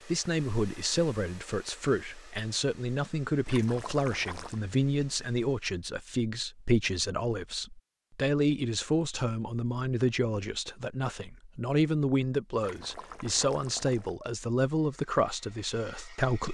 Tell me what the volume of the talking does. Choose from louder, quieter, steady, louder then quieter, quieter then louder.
steady.